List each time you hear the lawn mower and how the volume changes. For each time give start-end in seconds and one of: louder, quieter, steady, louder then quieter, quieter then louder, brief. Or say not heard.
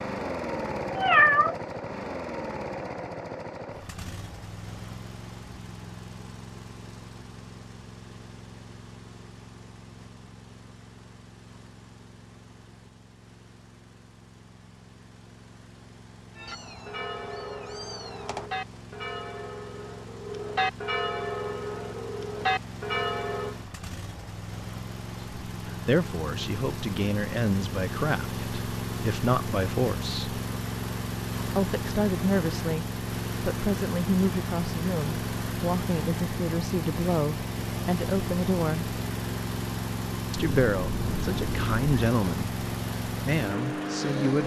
0.0-44.4 quieter then louder.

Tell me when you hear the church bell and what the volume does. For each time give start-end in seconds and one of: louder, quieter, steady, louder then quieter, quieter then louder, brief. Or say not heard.
16.4-23.6 louder.